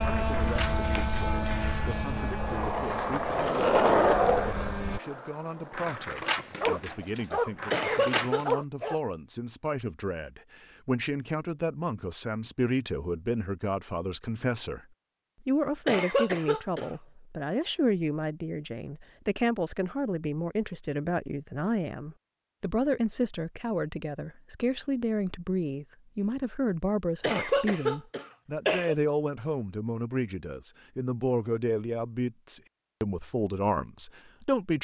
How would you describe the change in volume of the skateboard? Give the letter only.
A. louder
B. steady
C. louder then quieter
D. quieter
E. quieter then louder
C.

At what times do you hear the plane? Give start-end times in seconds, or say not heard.
0.0-5.0.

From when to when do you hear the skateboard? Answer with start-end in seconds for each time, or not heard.
0.0-8.6.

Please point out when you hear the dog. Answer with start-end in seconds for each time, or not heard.
6.3-9.0.